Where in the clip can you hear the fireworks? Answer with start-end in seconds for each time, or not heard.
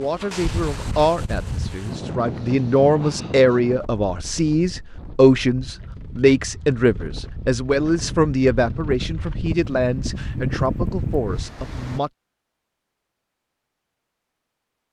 not heard.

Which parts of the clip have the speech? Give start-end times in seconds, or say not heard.
0.0-12.1.